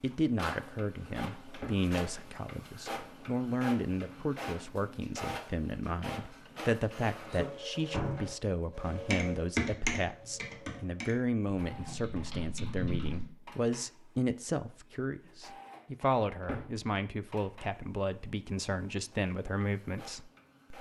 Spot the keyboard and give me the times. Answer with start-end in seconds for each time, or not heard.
8.9-13.2.